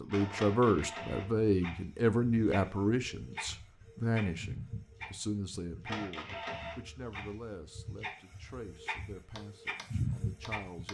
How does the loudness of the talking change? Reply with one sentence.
The loudness of the talking goes down.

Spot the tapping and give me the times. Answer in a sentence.
You can hear the tapping from 9.3 to 10.8 s.